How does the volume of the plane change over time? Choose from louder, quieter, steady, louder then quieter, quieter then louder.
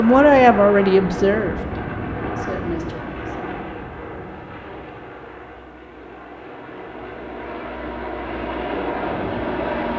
quieter then louder.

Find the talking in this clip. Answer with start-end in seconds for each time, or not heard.
0.0-3.6.